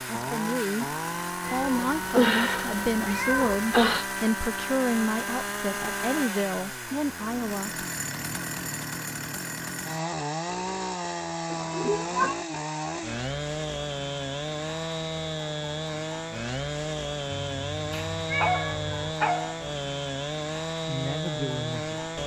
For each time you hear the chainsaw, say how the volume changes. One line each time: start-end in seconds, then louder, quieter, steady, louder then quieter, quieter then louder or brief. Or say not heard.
0.0-22.2 steady.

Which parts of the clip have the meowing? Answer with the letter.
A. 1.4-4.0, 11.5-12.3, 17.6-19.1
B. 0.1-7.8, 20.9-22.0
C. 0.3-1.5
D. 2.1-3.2
A.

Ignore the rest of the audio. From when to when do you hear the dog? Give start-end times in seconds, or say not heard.
18.4-19.6.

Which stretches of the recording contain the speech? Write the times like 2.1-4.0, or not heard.
0.1-7.8, 20.9-22.0.